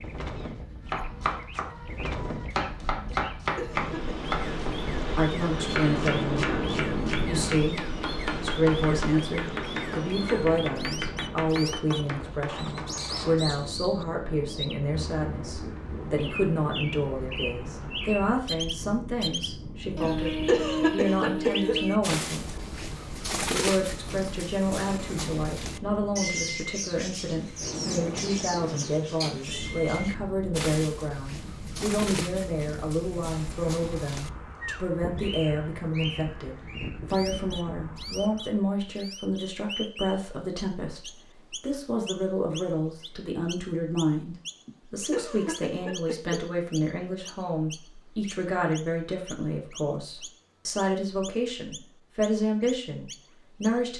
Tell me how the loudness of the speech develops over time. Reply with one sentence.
The volume of the speech stays about the same.